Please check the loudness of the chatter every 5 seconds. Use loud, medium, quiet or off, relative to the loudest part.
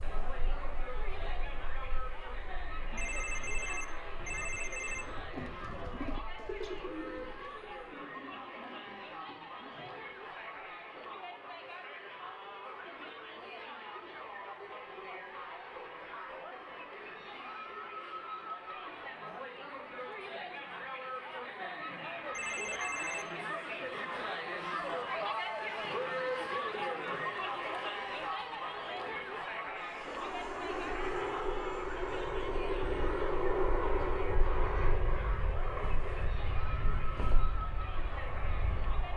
medium, medium, medium, medium, loud, loud, medium, medium.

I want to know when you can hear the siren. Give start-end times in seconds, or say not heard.
not heard.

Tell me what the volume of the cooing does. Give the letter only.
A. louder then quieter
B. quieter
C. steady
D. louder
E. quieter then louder
A.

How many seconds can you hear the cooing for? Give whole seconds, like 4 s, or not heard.
7 s.